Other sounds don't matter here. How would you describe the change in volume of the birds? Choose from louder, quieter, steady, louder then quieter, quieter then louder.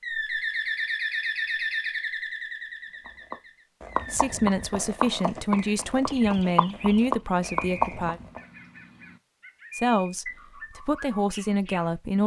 quieter.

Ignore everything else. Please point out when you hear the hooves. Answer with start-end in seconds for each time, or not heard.
3.0-8.4.